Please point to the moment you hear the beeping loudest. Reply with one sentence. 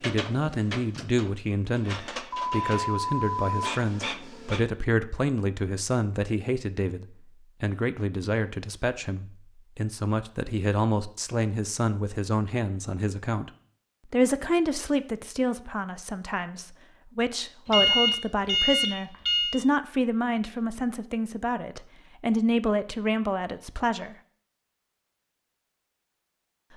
The volume of the beeping peaks at 18 seconds.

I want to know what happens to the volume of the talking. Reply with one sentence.
The loudness of the talking stays about the same.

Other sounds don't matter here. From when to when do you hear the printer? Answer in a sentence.
The printer can be heard from 0.0 to 4.7 s.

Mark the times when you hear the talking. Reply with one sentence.
You can hear the talking from 0.0 to 13.5 s and from 14.1 to 24.1 s.